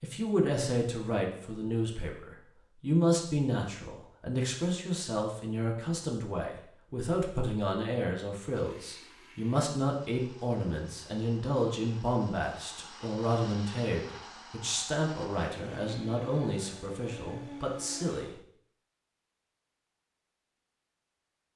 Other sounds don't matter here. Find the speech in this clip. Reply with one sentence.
The speech can be heard from 0.0 to 18.3 s.